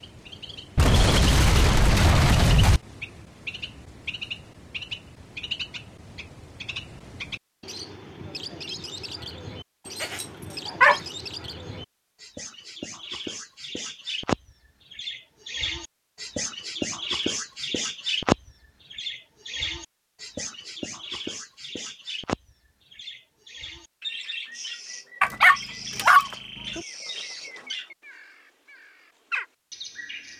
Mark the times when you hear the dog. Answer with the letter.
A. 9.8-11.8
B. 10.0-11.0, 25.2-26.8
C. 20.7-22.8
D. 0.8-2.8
B.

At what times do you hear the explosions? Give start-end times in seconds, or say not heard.
0.8-2.8.